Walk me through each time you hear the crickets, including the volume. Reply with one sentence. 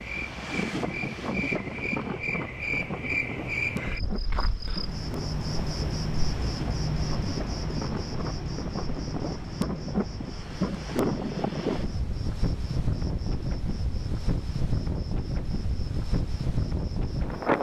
You can hear the crickets from 0.0 to 17.5 s, getting quieter.